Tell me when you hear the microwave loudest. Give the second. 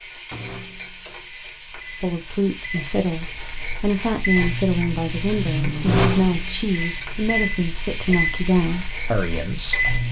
6 s.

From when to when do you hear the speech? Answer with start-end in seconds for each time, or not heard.
2.0-9.9.